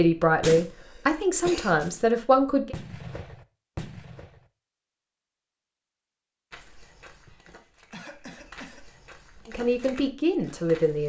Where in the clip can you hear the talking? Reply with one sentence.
The talking can be heard from 0.0 to 2.8 s and from 9.4 to 11.0 s.